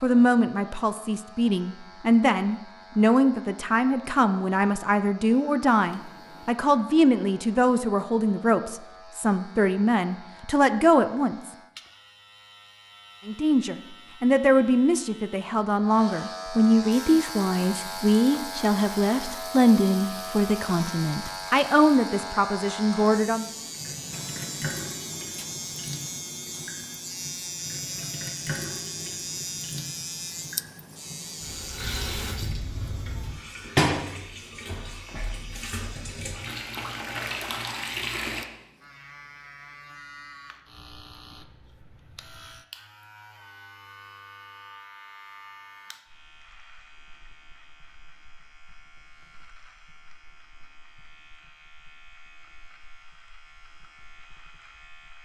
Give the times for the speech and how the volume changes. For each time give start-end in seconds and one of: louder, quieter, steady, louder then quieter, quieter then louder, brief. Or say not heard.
0.0-11.5 steady
13.2-23.5 steady.